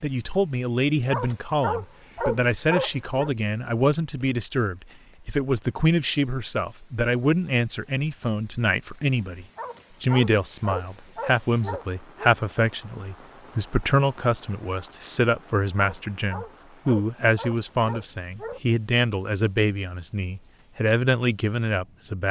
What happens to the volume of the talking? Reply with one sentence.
The loudness of the talking stays about the same.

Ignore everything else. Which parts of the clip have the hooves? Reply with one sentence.
The hooves can't be heard in this clip.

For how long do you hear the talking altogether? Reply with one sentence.
You can hear the talking for 22 seconds altogether.